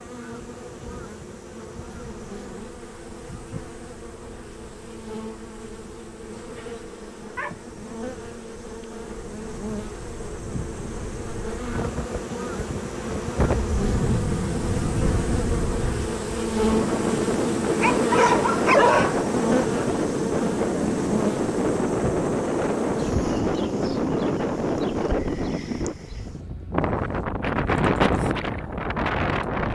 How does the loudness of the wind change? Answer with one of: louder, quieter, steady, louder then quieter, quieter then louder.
louder.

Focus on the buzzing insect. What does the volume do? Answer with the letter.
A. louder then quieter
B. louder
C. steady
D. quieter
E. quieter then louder
A.